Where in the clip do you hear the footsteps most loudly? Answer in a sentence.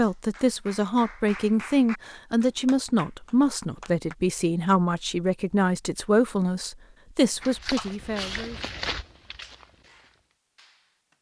The loudest moment of the footsteps is at 9 seconds.